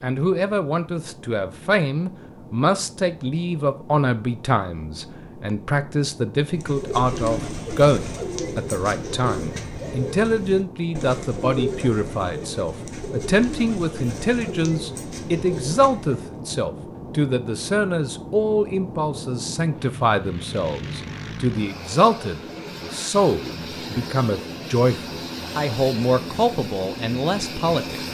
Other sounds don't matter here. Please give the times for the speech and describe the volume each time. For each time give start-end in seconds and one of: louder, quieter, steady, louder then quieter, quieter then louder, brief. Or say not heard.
0.0-28.0 steady.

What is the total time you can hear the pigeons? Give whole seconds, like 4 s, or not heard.
10 s.